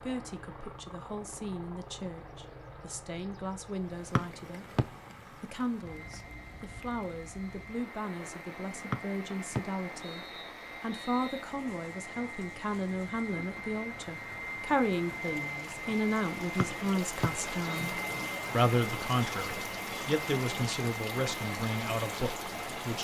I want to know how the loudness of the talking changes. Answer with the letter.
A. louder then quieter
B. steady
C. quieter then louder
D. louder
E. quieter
D.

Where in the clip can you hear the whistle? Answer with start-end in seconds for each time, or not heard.
4.2-4.8, 8.9-11.4, 16.6-17.9.